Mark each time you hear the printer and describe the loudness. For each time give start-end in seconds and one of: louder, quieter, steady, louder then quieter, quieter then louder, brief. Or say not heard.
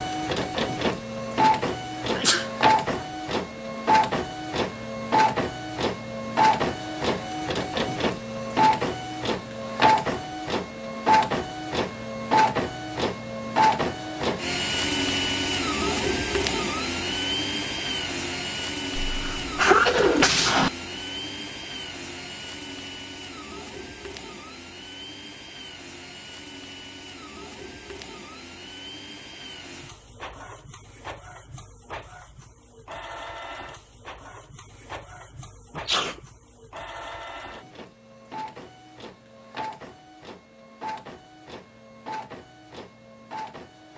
0.0-43.9 quieter.